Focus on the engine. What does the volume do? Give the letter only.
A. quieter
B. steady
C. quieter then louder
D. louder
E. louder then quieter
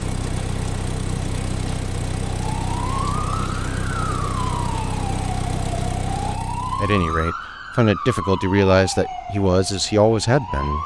B.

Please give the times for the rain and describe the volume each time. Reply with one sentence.
The rain can be heard from 0.0 to 6.4 s, at a steady volume.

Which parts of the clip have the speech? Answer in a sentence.
You can hear the speech from 6.8 to 10.8 s.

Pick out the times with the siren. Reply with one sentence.
You can hear the siren from 2.4 to 10.8 s.